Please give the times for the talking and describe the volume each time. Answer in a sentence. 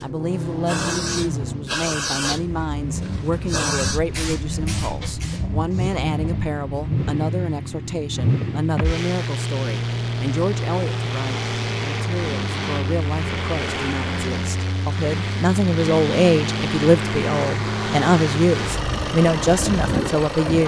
You can hear the talking from 0.0 to 20.6 s, getting louder.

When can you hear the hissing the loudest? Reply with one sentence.
The volume of the hissing peaks at 2 seconds.